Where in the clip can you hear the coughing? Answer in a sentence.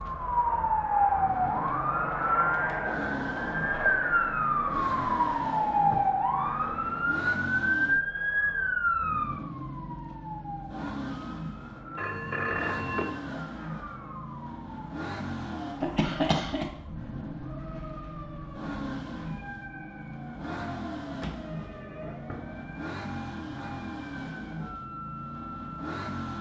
The coughing can be heard from 15.8 to 16.6 s.